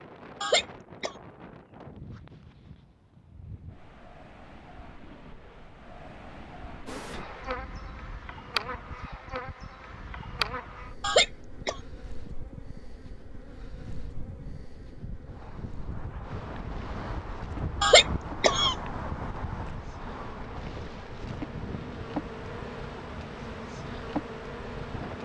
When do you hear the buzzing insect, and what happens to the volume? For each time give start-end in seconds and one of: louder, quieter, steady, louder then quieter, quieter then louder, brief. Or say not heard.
6.8-25.1 quieter then louder.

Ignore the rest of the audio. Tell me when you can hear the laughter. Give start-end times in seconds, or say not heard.
0.4-1.1, 11.0-11.8, 17.8-18.8.